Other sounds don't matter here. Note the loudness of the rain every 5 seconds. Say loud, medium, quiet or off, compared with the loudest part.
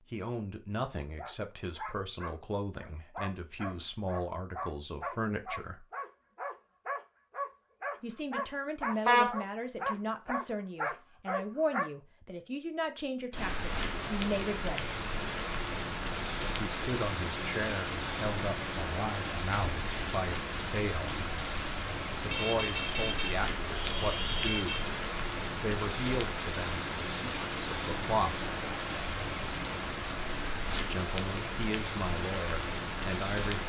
off, off, loud, loud, loud, loud, loud.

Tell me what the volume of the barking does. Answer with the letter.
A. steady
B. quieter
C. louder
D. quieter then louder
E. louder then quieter
C.